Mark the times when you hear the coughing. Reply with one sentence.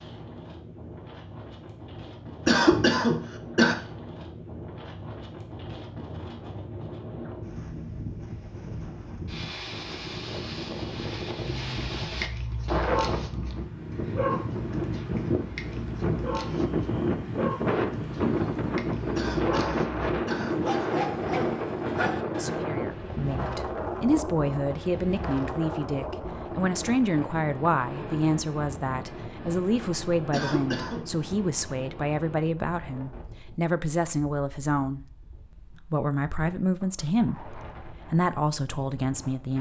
The coughing can be heard from 2.5 to 3.8 s, from 19.1 to 21.1 s and from 30.3 to 31.1 s.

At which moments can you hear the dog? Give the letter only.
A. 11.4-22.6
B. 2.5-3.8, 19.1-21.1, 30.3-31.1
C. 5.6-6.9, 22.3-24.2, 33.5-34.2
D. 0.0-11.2
A.